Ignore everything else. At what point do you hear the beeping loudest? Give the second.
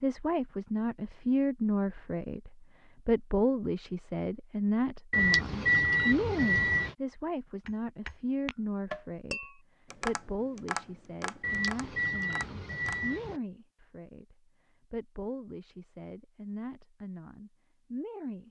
6 s.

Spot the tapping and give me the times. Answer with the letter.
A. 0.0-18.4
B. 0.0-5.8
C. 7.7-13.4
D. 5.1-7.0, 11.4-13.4
C.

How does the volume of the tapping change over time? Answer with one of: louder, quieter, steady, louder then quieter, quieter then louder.
quieter.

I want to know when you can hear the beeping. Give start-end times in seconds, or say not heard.
5.1-7.0, 11.4-13.4.